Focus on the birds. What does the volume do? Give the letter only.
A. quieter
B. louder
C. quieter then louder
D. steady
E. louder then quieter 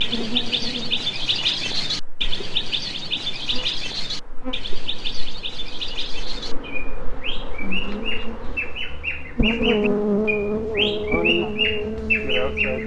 C.